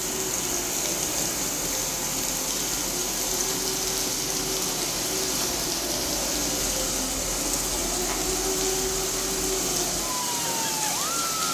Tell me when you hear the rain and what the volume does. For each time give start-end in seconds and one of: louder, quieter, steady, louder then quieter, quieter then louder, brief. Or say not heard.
0.0-11.4 steady.